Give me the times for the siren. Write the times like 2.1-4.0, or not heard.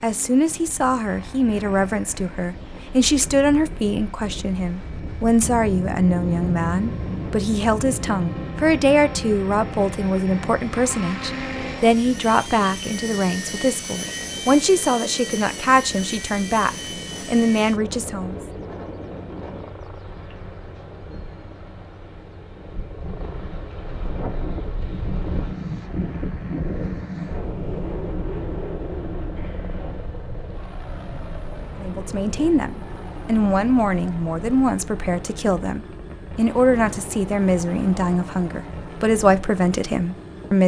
not heard.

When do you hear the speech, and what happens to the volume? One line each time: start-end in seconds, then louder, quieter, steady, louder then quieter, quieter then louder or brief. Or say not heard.
0.0-18.4 steady
31.8-40.6 steady.